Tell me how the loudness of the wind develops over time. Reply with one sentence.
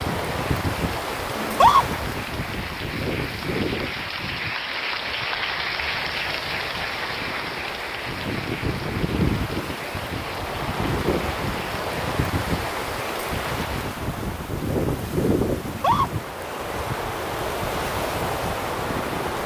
The volume of the wind goes down, then up.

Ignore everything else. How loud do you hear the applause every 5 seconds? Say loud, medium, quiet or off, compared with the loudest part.
loud, loud, medium, off.